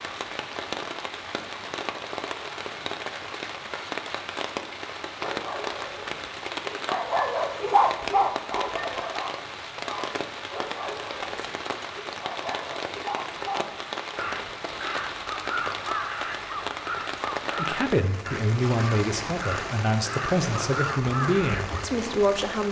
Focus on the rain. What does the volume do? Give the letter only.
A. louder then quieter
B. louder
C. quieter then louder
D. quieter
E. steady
E.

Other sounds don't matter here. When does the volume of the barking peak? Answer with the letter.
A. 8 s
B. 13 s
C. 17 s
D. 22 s
A.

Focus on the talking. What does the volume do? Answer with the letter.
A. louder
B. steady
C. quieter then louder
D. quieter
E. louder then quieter
B.